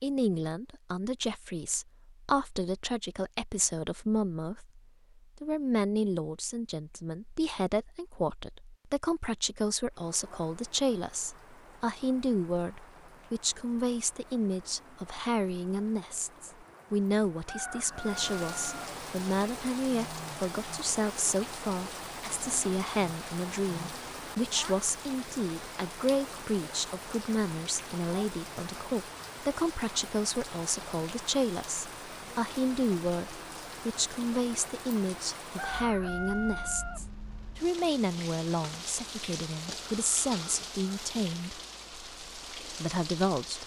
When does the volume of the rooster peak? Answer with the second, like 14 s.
36 s.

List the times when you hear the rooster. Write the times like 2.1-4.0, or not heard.
17.4-19.0, 35.5-37.1.